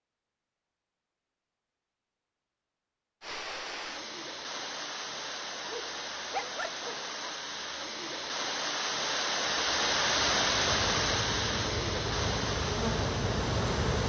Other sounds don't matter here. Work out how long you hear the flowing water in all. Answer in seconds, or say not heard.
11 s.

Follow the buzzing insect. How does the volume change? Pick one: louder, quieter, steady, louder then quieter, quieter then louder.
louder.